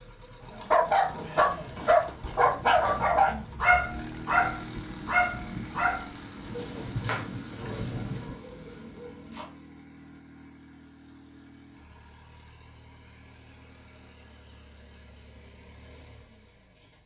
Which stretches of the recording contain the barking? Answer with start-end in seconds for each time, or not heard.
0.6-9.4.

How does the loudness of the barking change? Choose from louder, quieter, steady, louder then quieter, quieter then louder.
quieter.